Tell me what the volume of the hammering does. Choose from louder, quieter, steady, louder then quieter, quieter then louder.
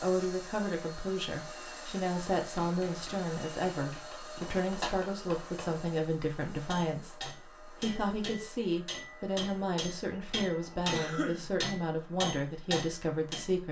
louder.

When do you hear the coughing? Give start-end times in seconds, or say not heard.
4.3-5.0, 10.9-11.4.